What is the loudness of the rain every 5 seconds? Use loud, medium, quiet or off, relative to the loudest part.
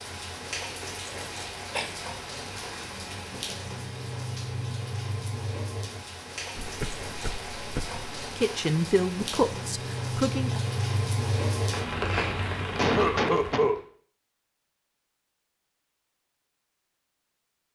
medium, medium, loud, off.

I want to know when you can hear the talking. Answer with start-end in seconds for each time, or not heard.
8.1-10.6.